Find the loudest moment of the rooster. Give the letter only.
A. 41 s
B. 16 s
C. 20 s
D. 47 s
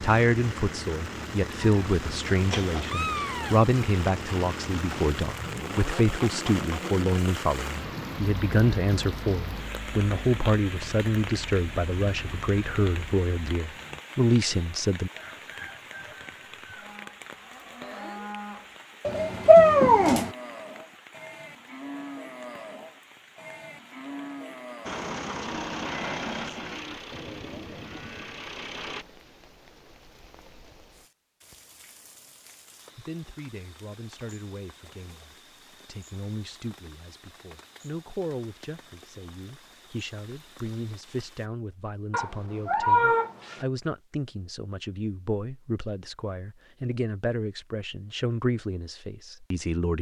B.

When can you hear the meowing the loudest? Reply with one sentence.
The loudest moment of the meowing is at 20 seconds.